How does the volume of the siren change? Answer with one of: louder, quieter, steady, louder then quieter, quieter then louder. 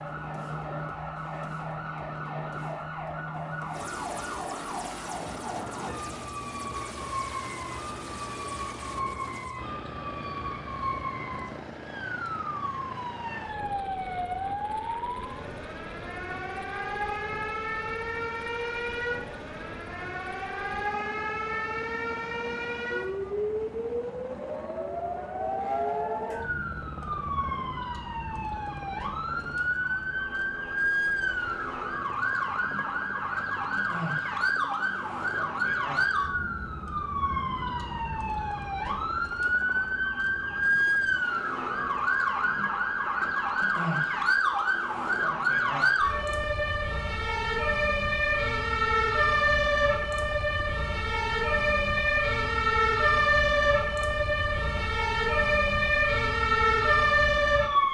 louder.